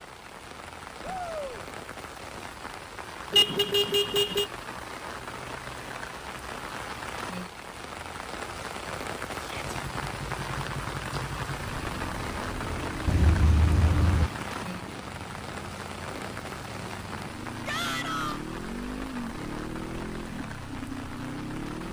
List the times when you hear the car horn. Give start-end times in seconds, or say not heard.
3.3-4.5, 13.1-14.3.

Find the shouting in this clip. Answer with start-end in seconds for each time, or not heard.
1.0-1.6, 9.3-9.8, 17.6-18.4.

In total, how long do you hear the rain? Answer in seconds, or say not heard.
22 s.